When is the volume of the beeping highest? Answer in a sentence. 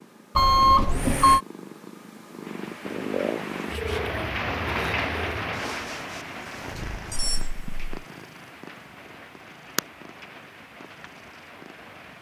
The volume of the beeping peaks at 1 second.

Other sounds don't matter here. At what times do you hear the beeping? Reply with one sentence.
You can hear the beeping from 0.3 to 1.4 s and from 7.1 to 7.9 s.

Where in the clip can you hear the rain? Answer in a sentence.
You can hear the rain from 2.4 to 12.1 s.